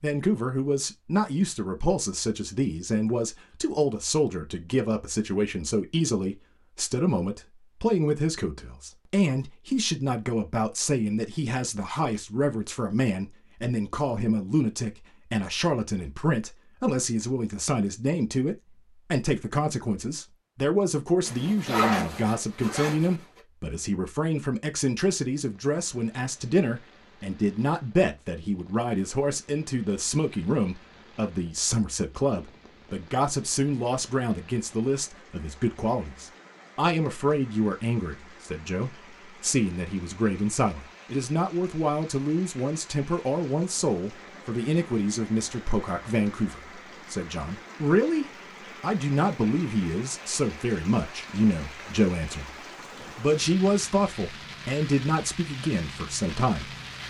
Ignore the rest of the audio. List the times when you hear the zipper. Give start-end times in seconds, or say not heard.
21.2-23.2.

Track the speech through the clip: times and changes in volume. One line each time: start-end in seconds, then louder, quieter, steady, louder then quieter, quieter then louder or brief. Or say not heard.
0.0-56.8 steady.